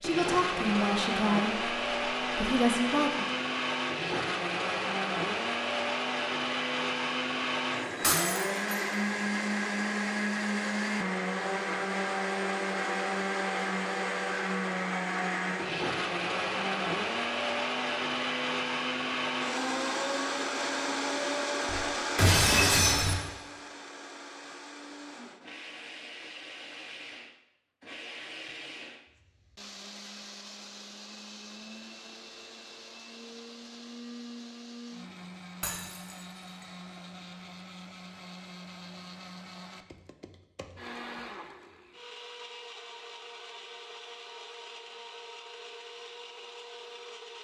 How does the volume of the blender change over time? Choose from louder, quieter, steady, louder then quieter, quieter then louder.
quieter.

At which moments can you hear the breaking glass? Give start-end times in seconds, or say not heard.
8.0-8.6, 21.6-23.1, 35.6-36.1.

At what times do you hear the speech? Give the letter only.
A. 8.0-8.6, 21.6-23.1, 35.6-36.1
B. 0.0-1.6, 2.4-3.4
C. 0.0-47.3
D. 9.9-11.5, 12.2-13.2
B.